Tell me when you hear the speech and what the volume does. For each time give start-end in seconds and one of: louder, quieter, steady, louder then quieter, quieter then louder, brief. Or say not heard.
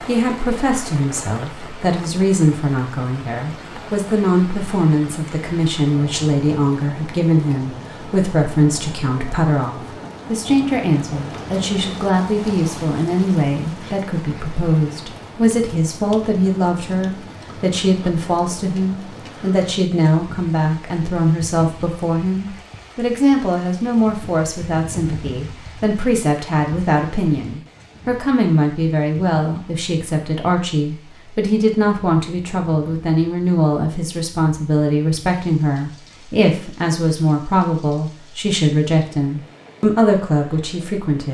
0.0-41.2 steady.